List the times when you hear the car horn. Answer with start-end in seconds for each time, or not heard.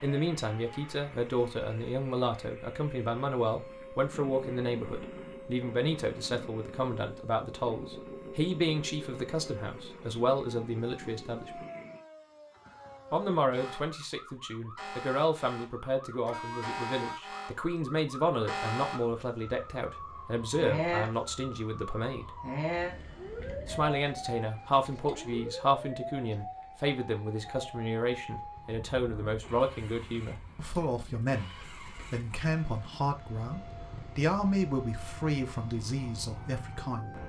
16.2-17.2.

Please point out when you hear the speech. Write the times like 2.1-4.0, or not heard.
0.0-11.7, 13.1-22.4, 23.6-37.2.